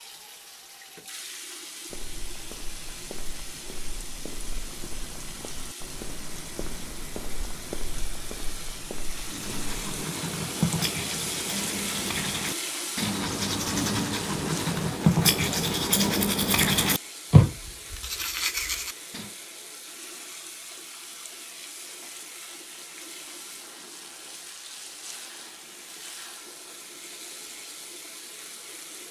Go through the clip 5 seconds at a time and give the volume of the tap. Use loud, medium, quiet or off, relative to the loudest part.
medium, medium, loud, medium, medium, medium.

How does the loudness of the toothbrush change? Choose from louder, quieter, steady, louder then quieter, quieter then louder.
louder.